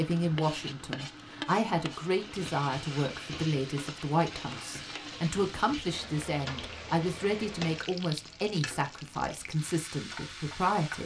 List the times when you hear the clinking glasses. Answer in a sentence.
You can't hear the clinking glasses here.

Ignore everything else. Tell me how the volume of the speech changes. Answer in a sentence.
The loudness of the speech stays about the same.